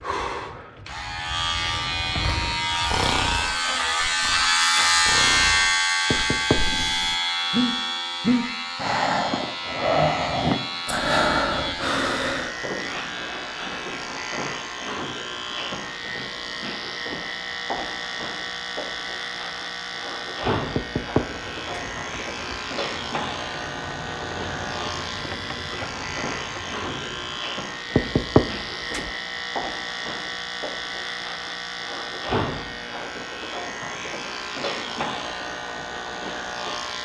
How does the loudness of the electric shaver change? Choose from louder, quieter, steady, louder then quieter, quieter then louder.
quieter.